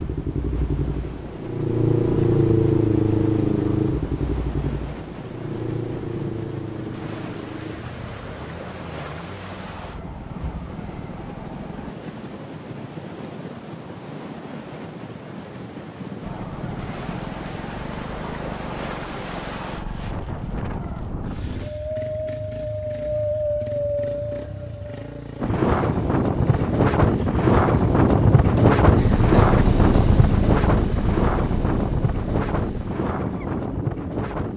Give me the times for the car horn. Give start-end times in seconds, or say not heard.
not heard.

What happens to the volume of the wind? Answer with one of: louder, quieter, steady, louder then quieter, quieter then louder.
louder.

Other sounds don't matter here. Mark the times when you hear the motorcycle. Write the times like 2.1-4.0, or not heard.
0.0-11.9, 16.2-34.3.